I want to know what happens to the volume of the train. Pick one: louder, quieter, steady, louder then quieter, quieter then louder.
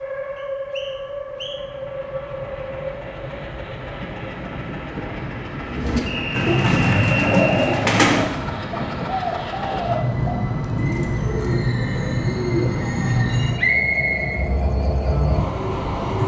louder.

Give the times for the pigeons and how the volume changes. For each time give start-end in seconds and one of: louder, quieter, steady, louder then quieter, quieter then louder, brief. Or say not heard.
5.7-12.8 quieter.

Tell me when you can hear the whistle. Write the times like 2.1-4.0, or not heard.
0.3-1.6, 6.0-7.8, 13.6-14.4.